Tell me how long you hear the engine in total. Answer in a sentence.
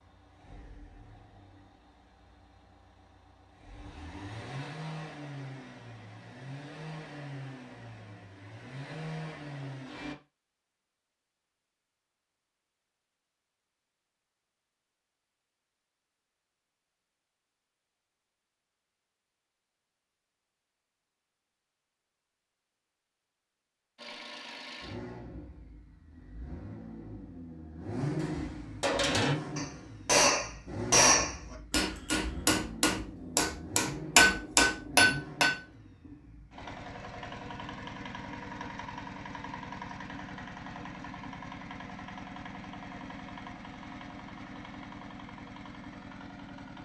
You can hear the engine for 33 seconds altogether.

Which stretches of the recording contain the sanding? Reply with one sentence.
You can't hear the sanding here.